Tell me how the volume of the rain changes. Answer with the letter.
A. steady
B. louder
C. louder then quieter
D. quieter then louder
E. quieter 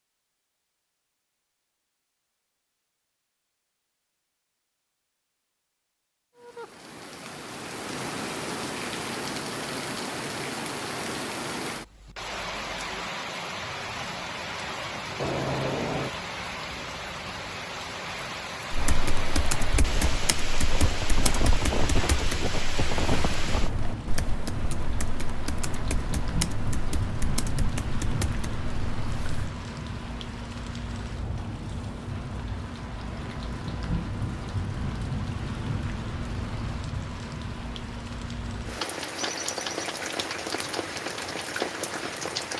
A.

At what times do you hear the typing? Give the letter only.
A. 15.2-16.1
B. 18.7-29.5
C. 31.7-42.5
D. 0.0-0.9
B.